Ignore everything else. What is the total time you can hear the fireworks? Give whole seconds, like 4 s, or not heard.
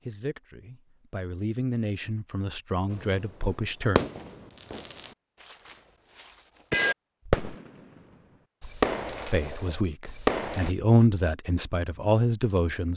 7 s.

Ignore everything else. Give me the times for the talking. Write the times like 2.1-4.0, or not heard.
0.1-4.0, 9.2-12.9.